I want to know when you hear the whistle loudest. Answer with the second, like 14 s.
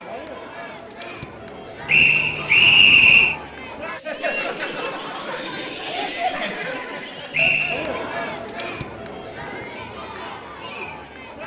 3 s.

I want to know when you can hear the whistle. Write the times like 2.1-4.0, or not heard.
1.9-3.4, 7.3-8.0.